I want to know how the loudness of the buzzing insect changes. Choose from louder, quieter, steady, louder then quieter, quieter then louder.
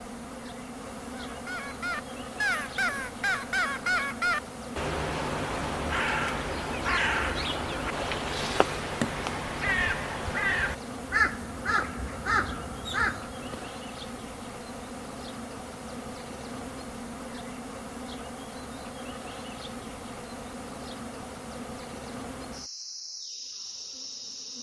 steady.